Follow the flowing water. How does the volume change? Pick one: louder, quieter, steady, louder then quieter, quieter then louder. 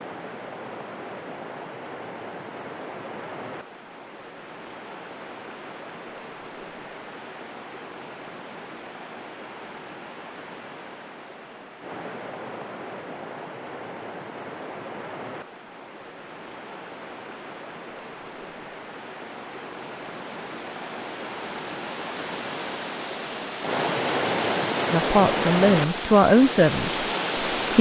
louder.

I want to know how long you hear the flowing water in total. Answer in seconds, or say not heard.
28 s.